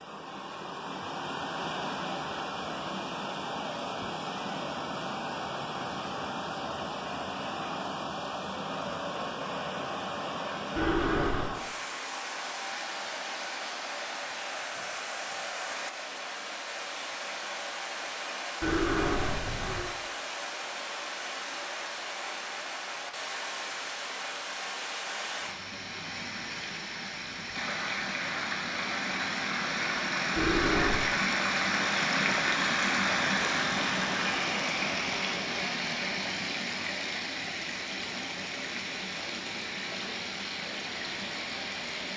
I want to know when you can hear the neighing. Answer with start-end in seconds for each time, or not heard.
10.8-11.5, 18.6-19.9, 30.4-31.1.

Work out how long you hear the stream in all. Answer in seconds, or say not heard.
42 s.